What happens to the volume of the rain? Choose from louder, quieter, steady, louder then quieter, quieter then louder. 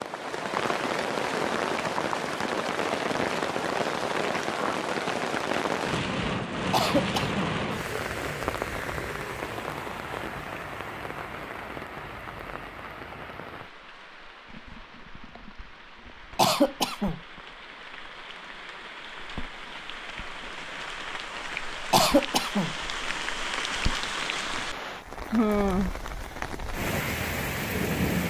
quieter then louder.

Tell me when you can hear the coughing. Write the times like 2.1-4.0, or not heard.
6.7-7.5, 16.4-17.2, 21.9-22.8.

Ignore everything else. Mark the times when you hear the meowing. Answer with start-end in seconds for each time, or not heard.
not heard.